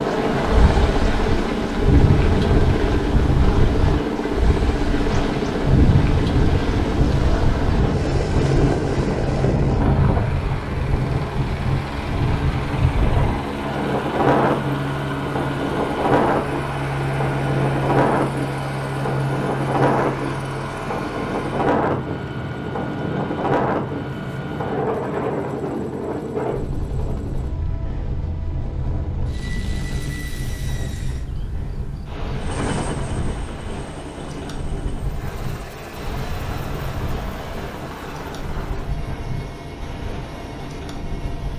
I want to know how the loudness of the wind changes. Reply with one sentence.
The volume of the wind goes down.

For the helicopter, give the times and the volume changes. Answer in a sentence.
You can hear the helicopter from 0.0 to 41.5 s, getting quieter.